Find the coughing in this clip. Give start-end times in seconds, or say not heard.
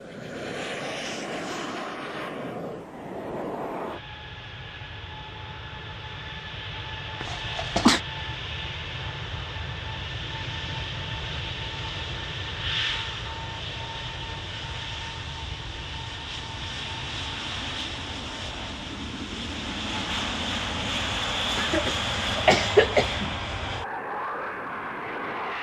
7.2-8.0, 21.6-23.4.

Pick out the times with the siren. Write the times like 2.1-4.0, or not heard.
not heard.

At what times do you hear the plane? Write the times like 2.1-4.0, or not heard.
0.0-25.5.